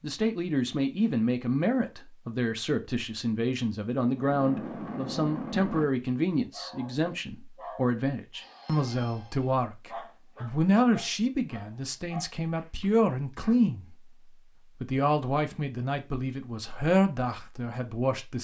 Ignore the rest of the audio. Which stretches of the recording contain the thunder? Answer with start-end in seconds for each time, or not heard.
4.2-5.8.